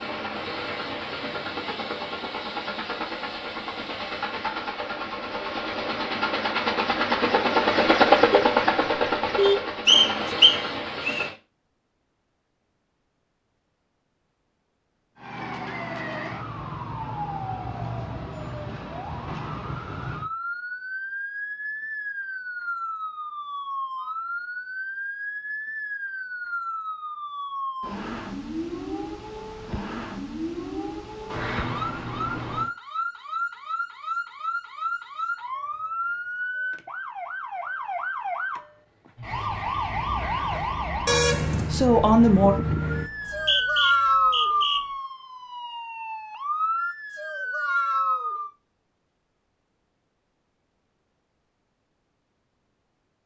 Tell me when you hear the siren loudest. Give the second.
44 s.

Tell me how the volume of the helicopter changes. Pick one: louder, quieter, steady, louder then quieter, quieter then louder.
louder then quieter.